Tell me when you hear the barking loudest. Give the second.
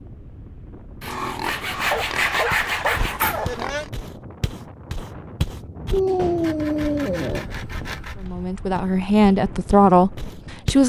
6 s.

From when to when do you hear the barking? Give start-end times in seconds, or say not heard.
1.1-3.9, 5.9-7.5.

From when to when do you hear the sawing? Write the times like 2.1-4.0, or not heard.
1.0-3.5, 6.4-8.2.